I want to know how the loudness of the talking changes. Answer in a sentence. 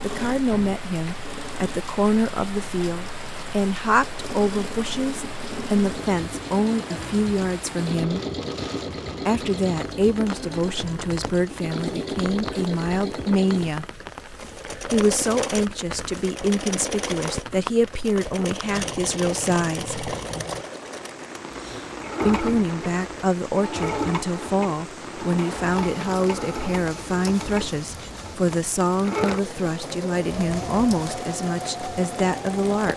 The volume of the talking stays about the same.